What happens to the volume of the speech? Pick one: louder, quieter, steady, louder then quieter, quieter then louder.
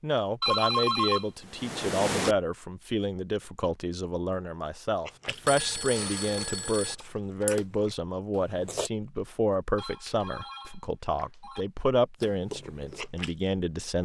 steady.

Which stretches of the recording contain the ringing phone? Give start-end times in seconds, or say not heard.
0.4-2.4, 5.5-7.0, 9.8-11.7.